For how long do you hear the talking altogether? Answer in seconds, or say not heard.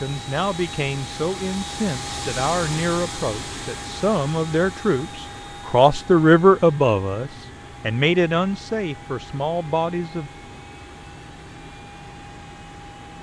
10 s.